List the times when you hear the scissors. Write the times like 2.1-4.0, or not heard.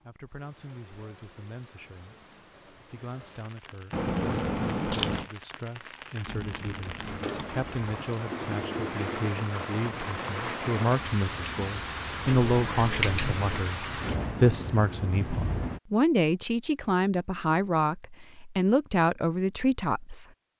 3.9-5.3, 12.4-13.7.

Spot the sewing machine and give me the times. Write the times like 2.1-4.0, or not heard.
6.2-9.3.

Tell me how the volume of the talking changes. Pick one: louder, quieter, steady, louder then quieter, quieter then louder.
louder.